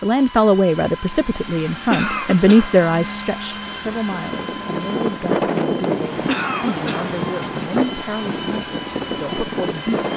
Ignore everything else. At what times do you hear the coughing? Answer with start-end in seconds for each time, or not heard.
1.9-2.7, 6.2-7.1.